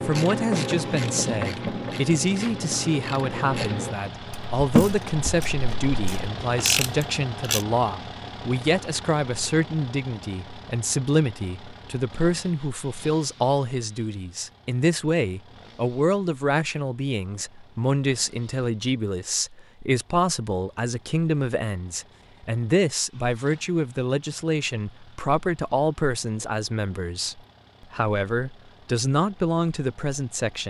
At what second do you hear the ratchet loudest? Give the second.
5 s.